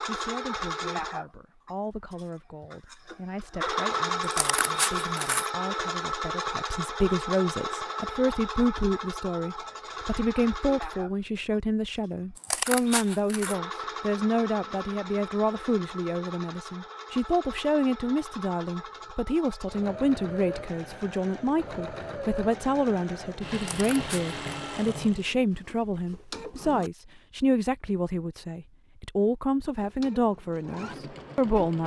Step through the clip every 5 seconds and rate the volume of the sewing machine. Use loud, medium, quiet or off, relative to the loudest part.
loud, loud, medium, medium, medium, medium, medium.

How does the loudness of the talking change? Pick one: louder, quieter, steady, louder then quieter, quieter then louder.
louder.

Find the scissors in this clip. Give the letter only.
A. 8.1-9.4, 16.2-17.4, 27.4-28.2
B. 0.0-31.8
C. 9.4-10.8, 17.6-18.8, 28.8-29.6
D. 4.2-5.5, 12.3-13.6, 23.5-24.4
D.